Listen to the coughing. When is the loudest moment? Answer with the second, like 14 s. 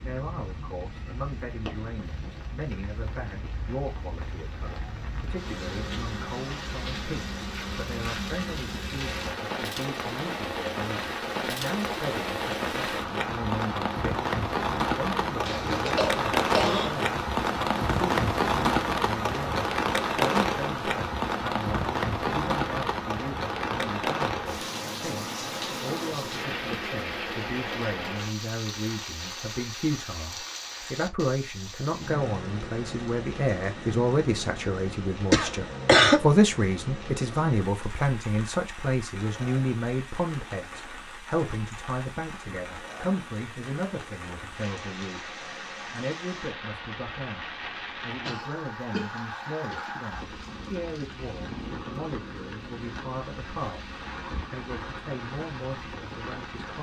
36 s.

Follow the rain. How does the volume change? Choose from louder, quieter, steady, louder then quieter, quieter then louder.
louder then quieter.